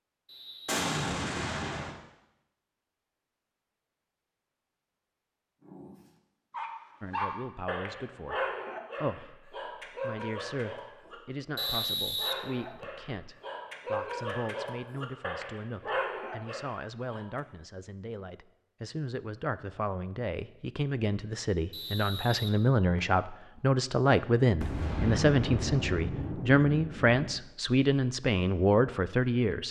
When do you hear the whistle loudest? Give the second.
12 s.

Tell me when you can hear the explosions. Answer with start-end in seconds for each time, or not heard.
0.7-1.9, 24.6-27.4.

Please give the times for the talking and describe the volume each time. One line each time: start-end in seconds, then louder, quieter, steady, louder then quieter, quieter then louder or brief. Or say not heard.
7.0-29.6 louder.